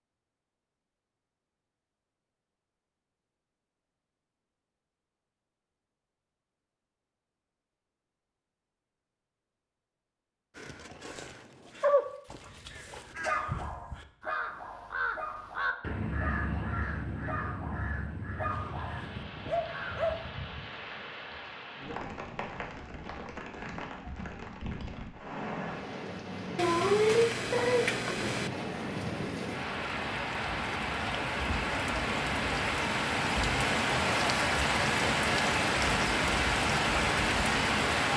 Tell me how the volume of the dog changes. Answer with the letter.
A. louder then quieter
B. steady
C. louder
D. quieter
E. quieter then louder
E.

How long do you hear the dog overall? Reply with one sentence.
You can hear the dog for 9 seconds altogether.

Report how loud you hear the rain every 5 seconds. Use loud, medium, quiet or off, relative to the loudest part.
off, off, off, quiet, quiet, medium, loud, loud.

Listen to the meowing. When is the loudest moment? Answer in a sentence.
The loudest moment of the meowing is at 27 seconds.